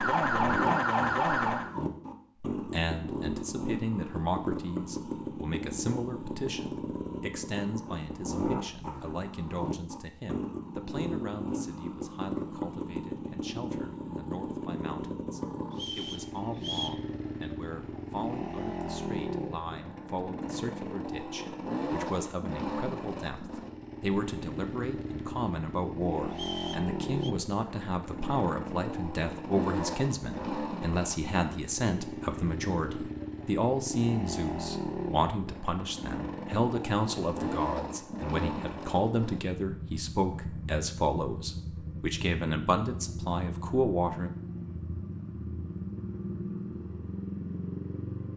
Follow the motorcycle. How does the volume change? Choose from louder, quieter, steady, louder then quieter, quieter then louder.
steady.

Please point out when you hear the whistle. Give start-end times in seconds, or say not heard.
15.7-17.0, 26.3-27.4.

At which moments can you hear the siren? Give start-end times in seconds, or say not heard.
0.0-1.7.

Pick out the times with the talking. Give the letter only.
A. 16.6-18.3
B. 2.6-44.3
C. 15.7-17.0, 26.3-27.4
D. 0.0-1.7
B.